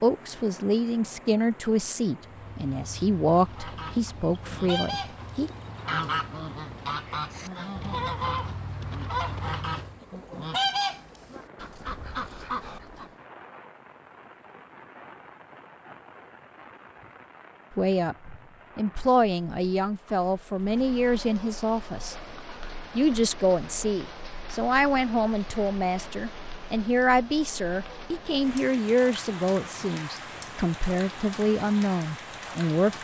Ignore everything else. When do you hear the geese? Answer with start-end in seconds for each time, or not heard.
3.4-13.1.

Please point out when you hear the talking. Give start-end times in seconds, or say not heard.
0.0-5.5, 17.8-22.1, 22.9-32.9.